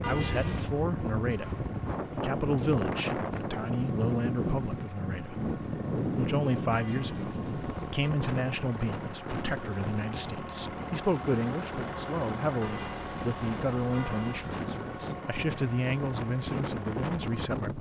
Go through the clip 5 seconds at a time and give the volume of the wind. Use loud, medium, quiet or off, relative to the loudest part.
loud, loud, medium, loud.